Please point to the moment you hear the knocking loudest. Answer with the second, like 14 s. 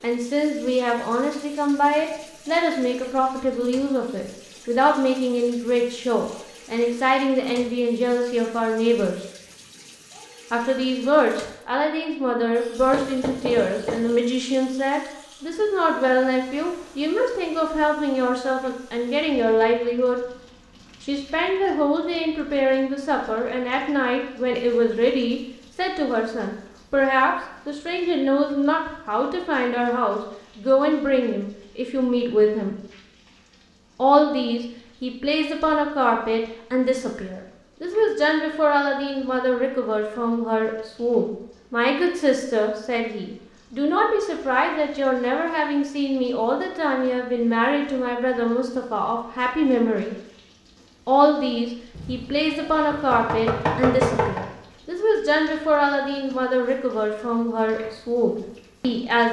54 s.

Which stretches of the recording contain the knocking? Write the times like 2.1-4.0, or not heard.
12.9-14.0, 52.0-54.5.